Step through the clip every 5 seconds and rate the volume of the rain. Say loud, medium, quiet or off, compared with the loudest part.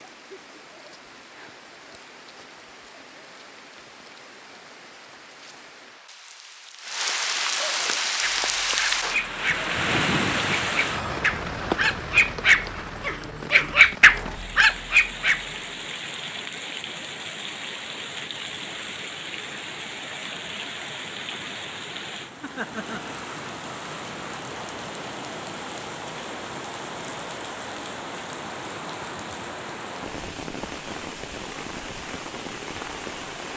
quiet, loud, loud, medium, medium, medium, medium.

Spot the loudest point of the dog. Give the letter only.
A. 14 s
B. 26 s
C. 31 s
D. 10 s
A.